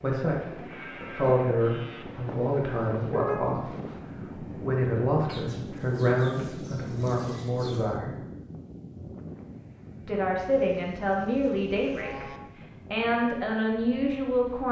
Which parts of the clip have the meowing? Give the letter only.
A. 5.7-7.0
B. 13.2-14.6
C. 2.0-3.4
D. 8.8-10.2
C.